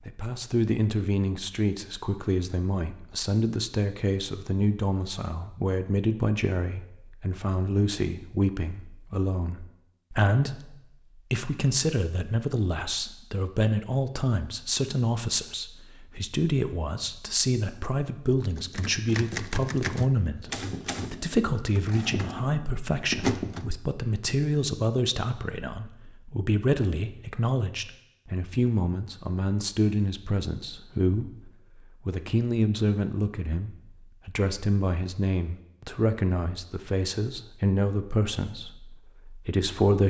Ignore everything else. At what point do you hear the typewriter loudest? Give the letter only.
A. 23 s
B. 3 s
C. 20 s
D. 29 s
A.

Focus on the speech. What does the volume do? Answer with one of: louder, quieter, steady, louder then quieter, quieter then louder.
steady.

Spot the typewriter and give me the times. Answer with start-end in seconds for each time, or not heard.
18.5-23.8.